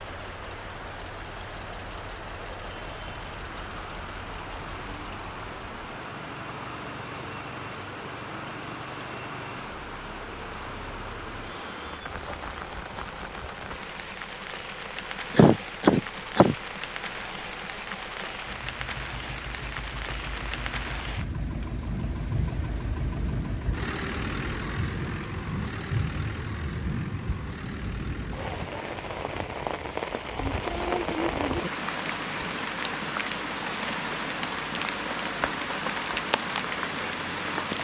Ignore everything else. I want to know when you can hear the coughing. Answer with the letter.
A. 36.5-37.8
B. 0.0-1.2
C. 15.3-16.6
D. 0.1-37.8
C.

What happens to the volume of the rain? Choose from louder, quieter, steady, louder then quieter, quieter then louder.
louder.